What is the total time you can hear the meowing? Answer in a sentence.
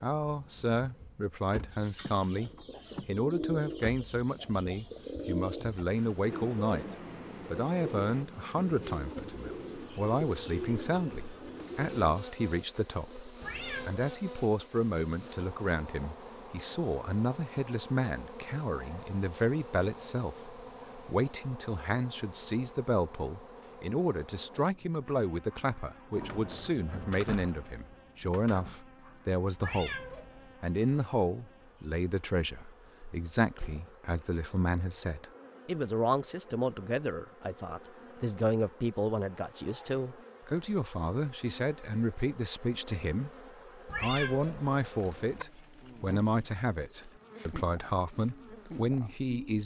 You can hear the meowing for 3 seconds altogether.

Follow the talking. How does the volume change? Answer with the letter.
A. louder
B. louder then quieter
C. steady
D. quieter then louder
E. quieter
C.